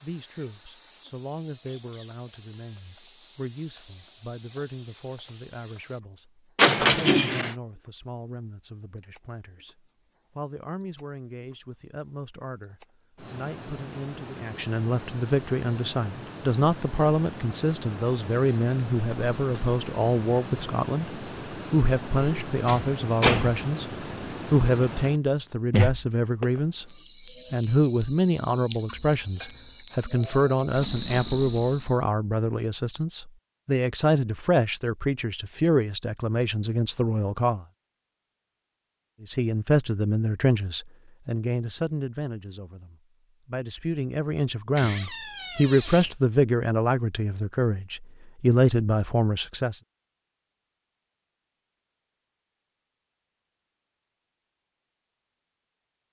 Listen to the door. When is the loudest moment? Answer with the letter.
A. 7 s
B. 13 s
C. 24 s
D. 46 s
A.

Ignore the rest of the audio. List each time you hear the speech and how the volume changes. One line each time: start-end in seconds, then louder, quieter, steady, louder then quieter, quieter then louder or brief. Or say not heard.
0.0-23.9 louder
24.5-26.9 brief
27.5-37.6 steady
39.2-49.8 quieter then louder.